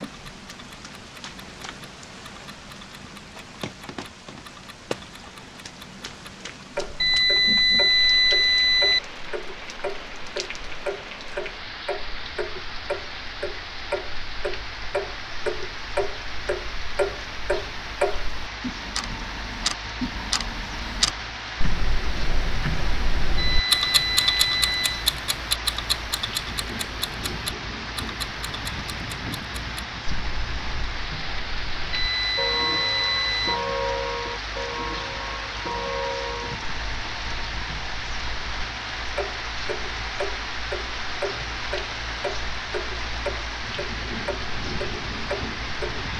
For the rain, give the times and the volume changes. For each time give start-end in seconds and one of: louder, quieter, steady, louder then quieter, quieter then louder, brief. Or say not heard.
0.0-46.1 louder.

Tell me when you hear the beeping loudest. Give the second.
8 s.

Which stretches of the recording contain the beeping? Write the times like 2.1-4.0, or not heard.
7.0-9.0, 23.4-25.1, 31.9-33.5.